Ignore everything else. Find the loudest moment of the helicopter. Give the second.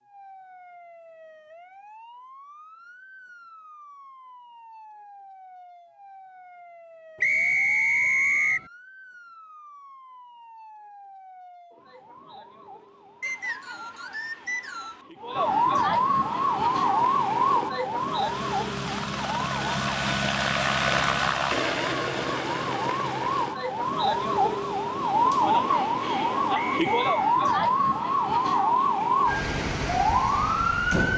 21 s.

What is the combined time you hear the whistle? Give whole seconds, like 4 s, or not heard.
4 s.